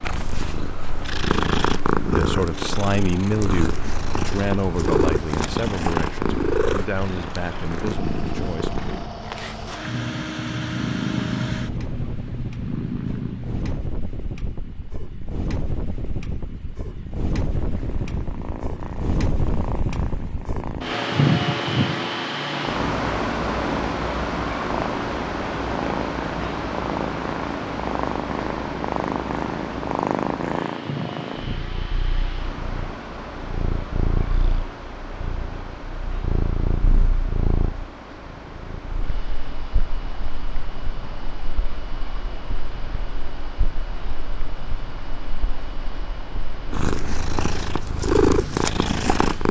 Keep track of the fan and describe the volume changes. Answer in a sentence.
The volume of the fan goes up, then down.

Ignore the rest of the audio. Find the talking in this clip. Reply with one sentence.
You can hear the talking from 2.1 to 8.8 s.